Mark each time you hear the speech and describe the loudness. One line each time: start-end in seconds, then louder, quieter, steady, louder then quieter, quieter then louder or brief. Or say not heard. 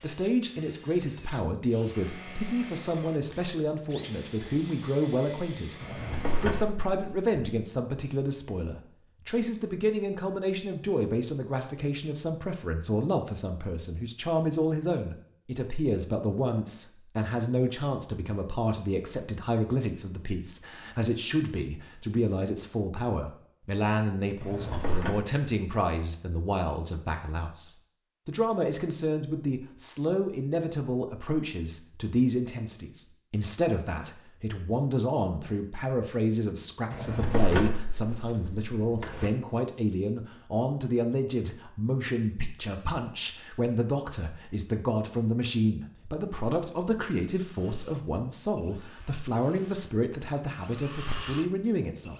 0.0-52.1 steady.